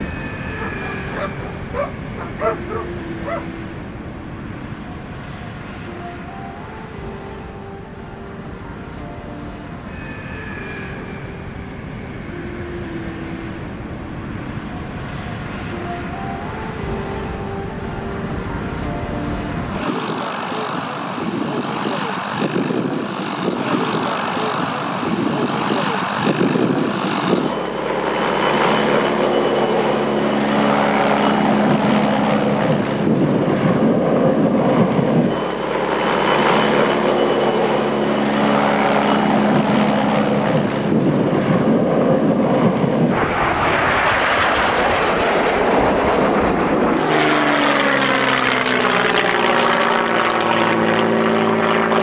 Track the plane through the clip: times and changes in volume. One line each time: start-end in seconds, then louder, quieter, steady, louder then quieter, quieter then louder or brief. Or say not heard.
0.0-51.9 louder.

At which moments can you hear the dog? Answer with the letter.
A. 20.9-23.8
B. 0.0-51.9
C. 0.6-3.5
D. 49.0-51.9
C.